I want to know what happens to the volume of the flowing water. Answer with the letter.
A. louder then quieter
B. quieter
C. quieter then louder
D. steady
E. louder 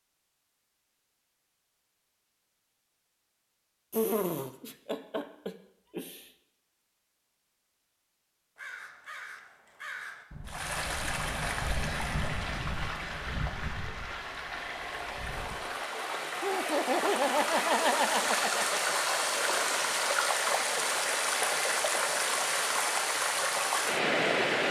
E.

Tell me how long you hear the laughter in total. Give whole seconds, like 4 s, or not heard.
5 s.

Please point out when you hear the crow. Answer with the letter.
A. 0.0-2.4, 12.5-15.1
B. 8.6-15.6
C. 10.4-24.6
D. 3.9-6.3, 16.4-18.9
B.